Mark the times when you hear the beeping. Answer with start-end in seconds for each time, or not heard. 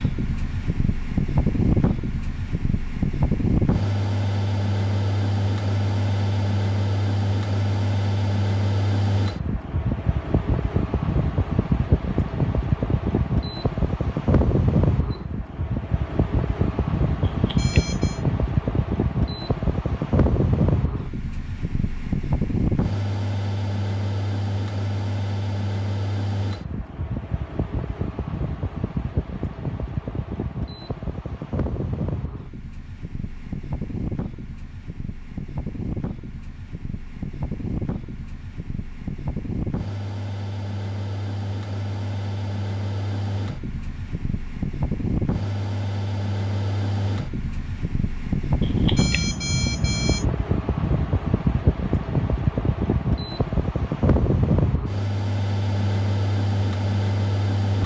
17.2-18.2, 48.6-50.3.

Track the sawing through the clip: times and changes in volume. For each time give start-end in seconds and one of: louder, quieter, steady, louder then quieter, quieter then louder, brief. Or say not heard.
not heard.